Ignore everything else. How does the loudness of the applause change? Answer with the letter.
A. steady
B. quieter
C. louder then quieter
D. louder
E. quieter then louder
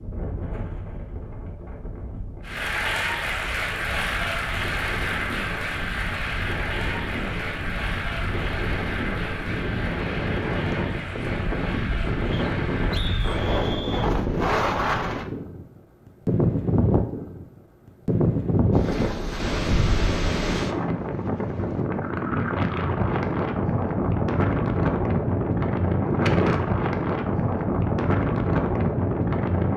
B.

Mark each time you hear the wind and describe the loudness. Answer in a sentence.
You can hear the wind from 0.0 to 29.7 s, getting louder.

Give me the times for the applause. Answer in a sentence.
You can hear the applause from 2.4 to 13.6 s.